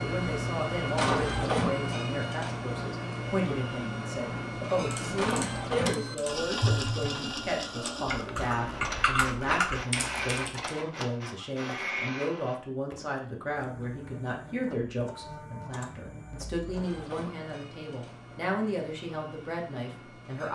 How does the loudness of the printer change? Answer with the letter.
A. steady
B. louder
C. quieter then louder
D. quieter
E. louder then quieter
D.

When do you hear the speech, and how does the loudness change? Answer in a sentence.
You can hear the speech from 0.0 to 20.5 s, at a steady volume.